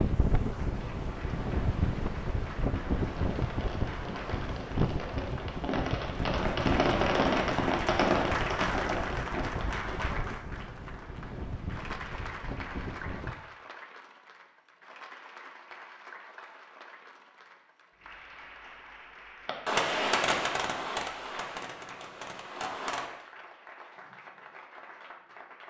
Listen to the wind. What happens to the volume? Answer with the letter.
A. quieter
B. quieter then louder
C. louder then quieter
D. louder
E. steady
A.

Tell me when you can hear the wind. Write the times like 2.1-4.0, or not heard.
0.0-13.3.